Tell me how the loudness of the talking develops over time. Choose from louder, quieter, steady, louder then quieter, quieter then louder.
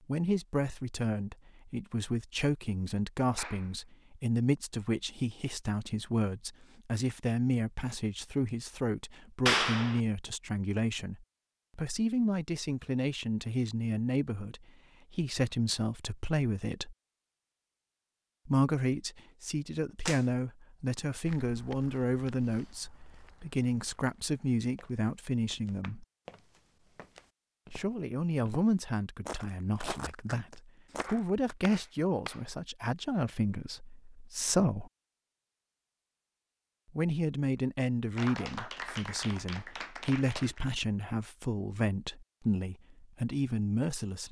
steady.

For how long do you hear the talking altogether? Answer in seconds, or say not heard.
39 s.